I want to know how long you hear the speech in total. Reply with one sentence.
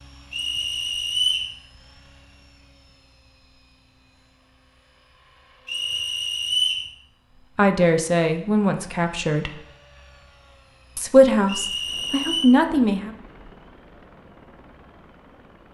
The speech can be heard for 4 seconds in total.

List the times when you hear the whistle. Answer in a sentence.
The whistle can be heard from 0.3 to 1.5 s, from 5.7 to 6.9 s and from 11.4 to 12.5 s.